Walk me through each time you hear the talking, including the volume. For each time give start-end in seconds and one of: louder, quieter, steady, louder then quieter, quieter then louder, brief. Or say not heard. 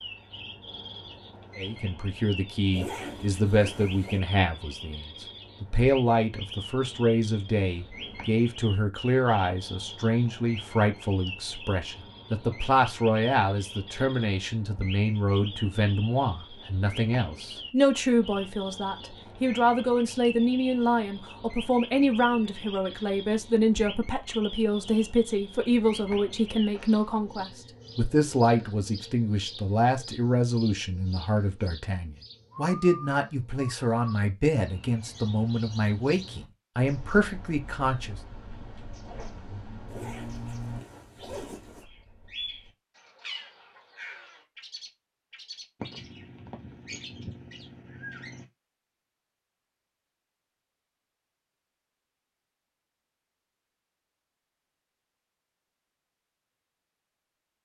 1.6-38.1 steady.